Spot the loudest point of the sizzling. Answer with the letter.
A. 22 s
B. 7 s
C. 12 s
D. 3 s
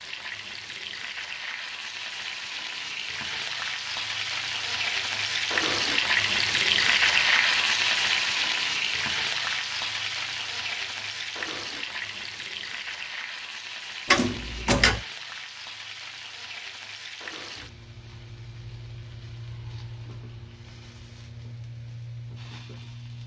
B.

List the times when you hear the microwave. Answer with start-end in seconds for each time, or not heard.
not heard.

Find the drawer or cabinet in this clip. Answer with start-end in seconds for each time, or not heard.
14.1-15.1.